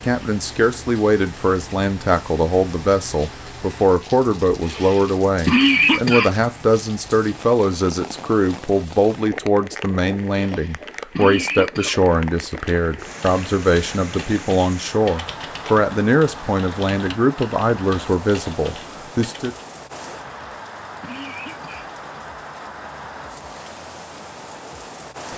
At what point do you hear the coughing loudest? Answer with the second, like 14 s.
6 s.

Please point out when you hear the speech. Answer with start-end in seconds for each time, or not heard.
0.0-19.6.